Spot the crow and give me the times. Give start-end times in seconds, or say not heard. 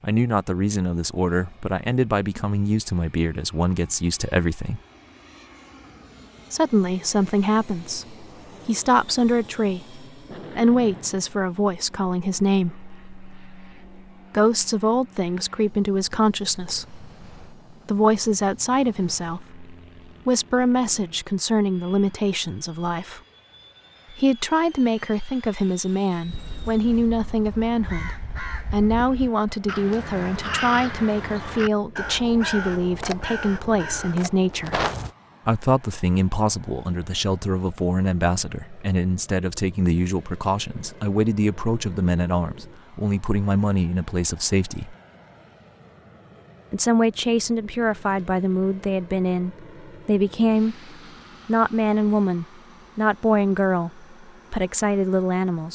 26.2-35.1.